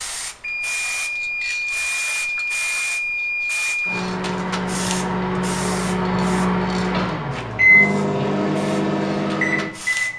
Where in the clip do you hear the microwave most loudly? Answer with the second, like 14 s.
8 s.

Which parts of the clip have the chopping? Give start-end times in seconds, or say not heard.
not heard.